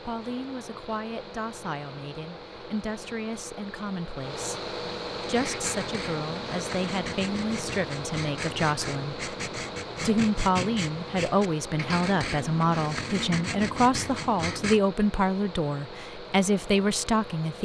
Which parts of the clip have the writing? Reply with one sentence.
The writing can be heard from 5.2 to 14.8 s.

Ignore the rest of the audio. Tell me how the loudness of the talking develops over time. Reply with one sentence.
The volume of the talking goes up.